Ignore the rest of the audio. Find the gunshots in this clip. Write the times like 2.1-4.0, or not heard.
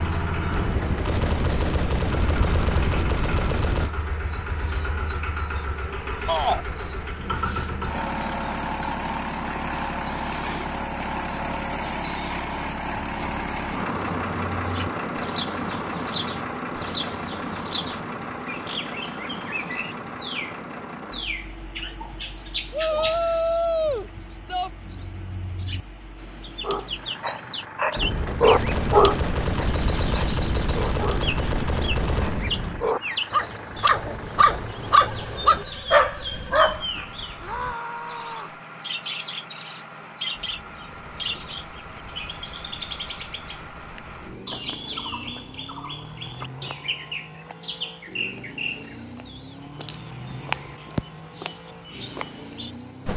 0.5-4.0, 27.9-32.9, 40.3-44.5.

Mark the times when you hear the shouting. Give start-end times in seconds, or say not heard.
6.2-6.7, 22.7-24.7, 37.4-38.6.